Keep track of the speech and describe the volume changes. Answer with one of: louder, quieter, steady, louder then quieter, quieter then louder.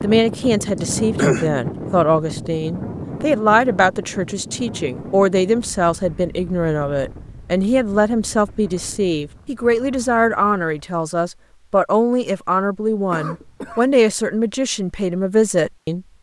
steady.